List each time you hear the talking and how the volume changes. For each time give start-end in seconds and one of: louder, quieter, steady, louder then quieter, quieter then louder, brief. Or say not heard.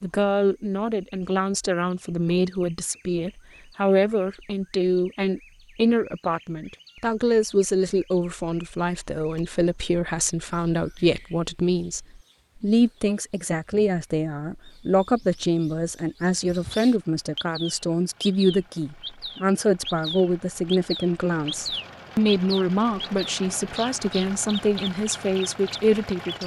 0.0-26.4 steady.